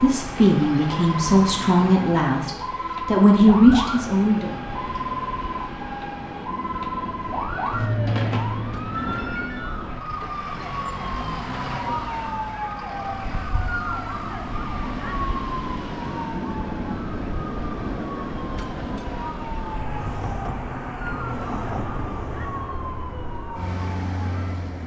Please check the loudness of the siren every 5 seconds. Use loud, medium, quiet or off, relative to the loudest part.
loud, loud, loud, medium, medium.